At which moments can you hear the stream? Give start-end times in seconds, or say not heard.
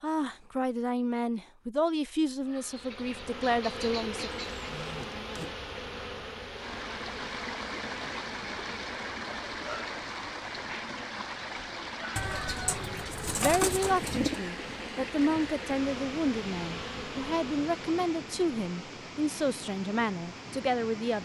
6.5-21.2.